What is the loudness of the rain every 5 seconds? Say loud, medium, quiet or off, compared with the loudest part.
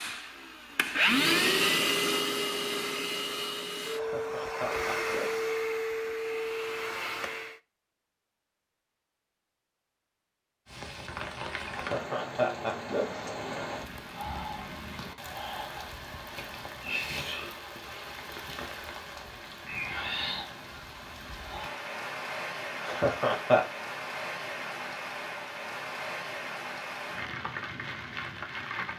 off, off, loud, loud, loud, loud.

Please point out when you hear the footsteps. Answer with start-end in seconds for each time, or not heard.
not heard.